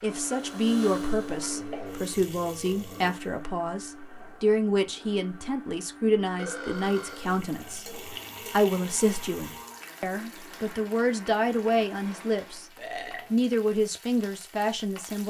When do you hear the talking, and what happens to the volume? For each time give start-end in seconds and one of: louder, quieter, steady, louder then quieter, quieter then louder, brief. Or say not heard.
0.0-12.7 steady
13.3-15.2 brief.